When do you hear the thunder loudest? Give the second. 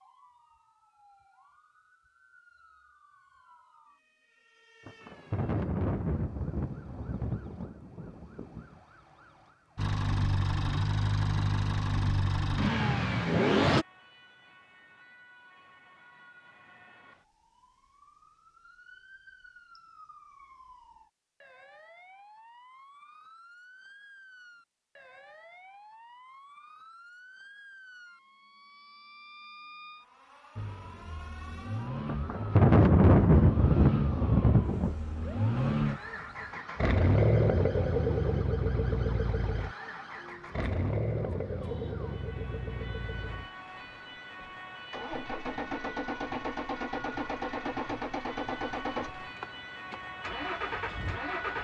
33 s.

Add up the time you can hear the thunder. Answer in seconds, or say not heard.
7 s.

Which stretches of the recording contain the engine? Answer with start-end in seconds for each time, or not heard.
9.8-13.8, 30.6-51.6.